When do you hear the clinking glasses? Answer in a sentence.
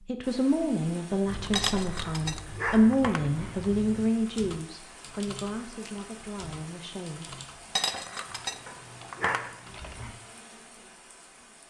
The clinking glasses can be heard from 1.6 to 3.4 s and from 7.8 to 9.6 s.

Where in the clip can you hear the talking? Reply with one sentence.
The talking can be heard from 0.1 to 7.3 s.